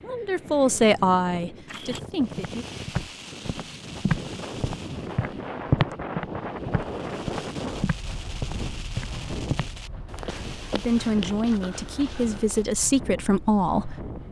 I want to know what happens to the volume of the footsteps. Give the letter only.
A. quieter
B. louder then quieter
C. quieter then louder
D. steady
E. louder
B.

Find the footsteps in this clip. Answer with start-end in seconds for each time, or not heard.
1.6-12.7.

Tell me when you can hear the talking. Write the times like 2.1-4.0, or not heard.
0.0-2.6, 10.7-14.0.